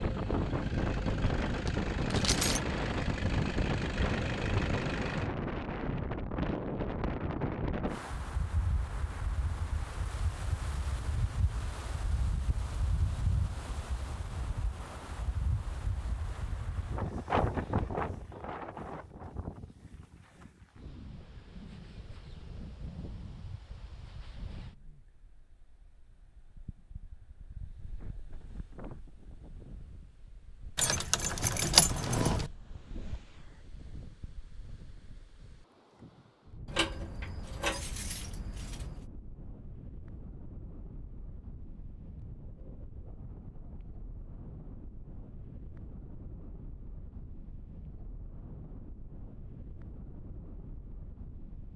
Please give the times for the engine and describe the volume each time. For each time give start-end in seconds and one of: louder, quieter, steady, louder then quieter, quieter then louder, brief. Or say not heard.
0.0-5.3 steady.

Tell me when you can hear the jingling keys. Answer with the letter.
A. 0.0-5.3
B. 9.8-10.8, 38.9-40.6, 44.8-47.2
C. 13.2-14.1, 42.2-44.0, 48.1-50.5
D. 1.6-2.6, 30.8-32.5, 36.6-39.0
D.